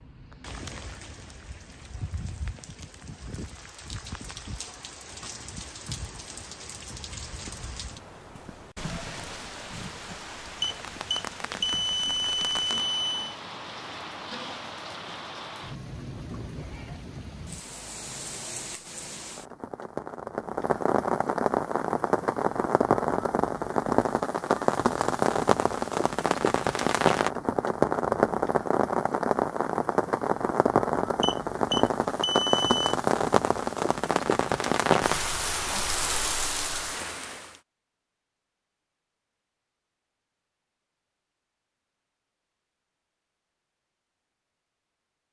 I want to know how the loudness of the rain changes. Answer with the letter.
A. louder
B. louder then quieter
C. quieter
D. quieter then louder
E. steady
A.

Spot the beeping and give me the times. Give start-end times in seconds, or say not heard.
10.6-13.3, 31.2-33.0.